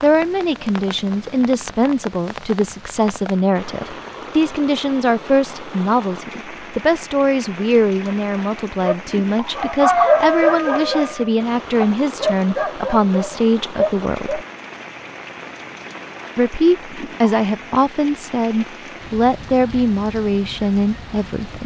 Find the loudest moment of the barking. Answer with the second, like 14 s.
10 s.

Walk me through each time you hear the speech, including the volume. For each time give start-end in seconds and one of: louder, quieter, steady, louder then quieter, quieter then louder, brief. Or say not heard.
0.0-14.4 steady
16.4-21.6 steady.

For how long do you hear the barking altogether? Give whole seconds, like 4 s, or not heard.
6 s.